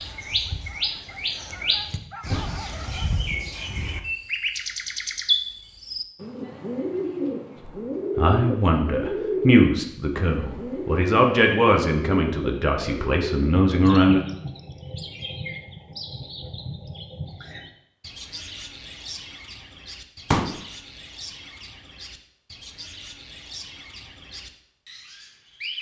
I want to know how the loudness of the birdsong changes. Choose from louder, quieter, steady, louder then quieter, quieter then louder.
quieter.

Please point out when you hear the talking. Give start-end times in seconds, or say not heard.
7.7-14.2.